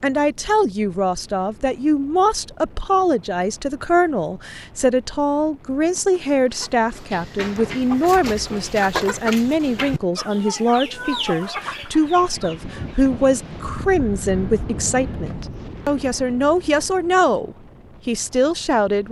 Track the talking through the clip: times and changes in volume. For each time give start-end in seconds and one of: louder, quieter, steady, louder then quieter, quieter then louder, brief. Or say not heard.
0.0-19.0 steady.